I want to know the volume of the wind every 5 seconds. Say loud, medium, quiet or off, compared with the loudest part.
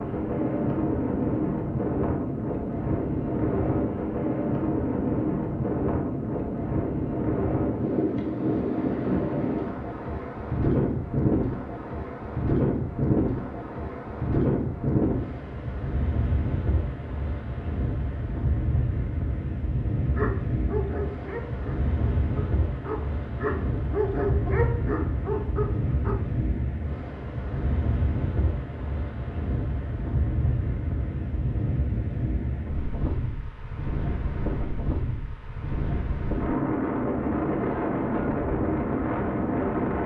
loud, loud, loud, medium, medium, medium, medium, loud.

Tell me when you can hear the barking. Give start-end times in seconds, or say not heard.
20.1-26.1.